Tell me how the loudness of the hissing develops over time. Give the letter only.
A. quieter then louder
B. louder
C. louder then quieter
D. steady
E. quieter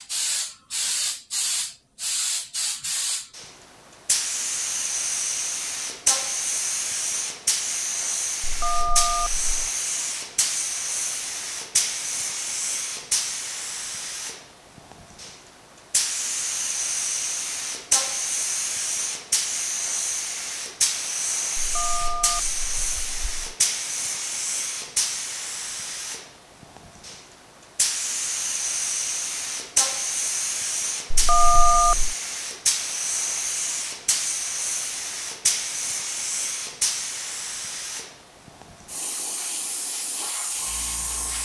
D.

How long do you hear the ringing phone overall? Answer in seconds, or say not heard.
4 s.